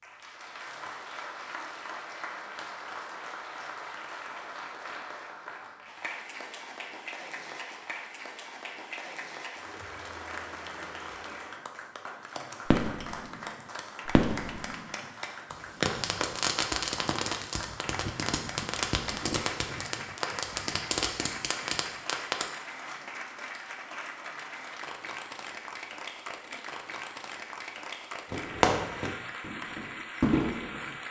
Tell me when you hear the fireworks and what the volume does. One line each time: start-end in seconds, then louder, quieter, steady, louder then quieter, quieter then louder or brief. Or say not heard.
12.7-22.4 steady
28.3-31.0 brief.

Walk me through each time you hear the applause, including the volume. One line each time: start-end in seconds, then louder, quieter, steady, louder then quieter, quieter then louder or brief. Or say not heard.
0.0-31.0 steady.